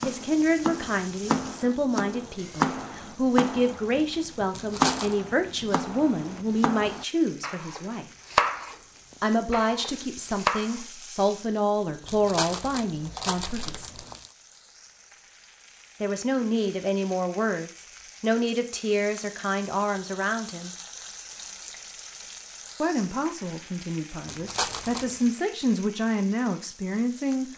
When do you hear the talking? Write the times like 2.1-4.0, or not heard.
0.0-8.1, 9.2-14.1, 16.0-20.7, 22.8-27.5.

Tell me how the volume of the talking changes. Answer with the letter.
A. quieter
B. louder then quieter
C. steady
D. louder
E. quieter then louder
C.